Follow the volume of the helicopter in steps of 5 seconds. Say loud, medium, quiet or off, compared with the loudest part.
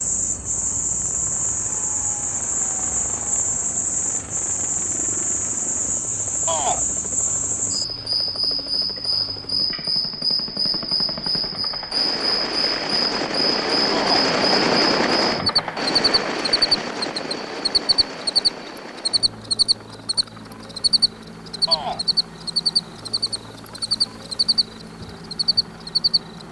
quiet, quiet, loud, loud, quiet, quiet.